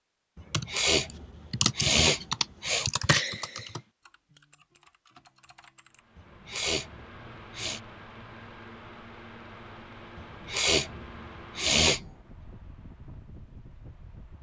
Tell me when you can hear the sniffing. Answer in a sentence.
You can hear the sniffing from 0.3 to 2.9 s, from 6.2 to 7.8 s and from 10.2 to 12.1 s.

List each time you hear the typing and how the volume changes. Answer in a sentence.
The typing can be heard from 0.5 to 6.0 s, getting quieter.